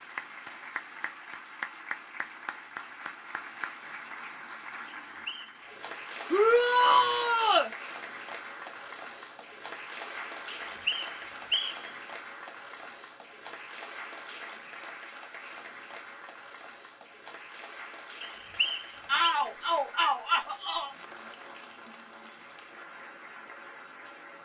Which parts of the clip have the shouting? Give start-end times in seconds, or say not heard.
6.3-7.7, 19.1-20.9.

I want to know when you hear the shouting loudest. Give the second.
7 s.